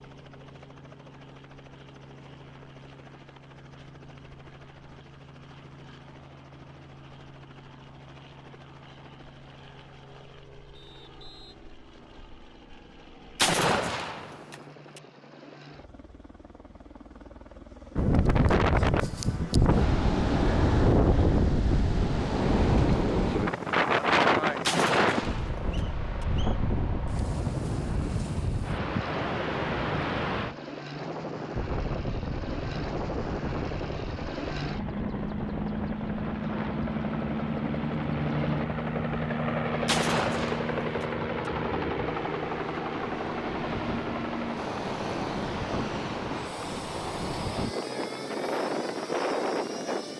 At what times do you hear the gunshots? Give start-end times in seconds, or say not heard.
13.3-15.0, 24.6-26.2, 39.9-41.5.